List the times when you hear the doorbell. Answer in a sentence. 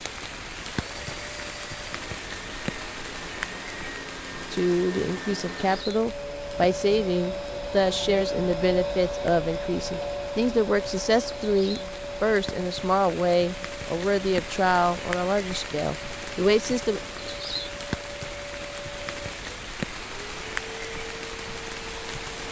The doorbell can't be heard in this clip.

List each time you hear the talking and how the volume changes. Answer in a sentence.
The talking can be heard from 4.5 to 17.0 s, at a steady volume.